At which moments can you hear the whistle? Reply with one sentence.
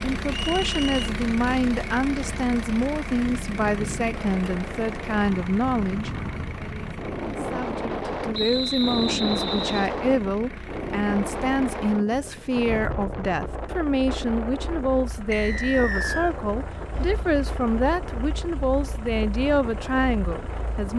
You can hear the whistle from 0.3 to 1.1 s, from 8.3 to 9.9 s and from 15.3 to 16.4 s.